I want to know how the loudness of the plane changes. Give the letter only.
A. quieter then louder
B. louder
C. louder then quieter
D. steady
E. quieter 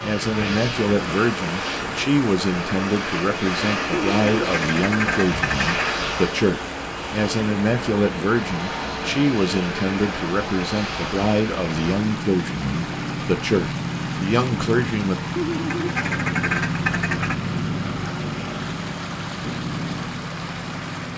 D.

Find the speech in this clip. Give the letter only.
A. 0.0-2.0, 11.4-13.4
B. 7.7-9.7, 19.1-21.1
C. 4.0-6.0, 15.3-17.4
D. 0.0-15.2
D.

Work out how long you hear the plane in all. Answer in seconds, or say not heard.
21 s.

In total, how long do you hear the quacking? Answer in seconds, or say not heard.
4 s.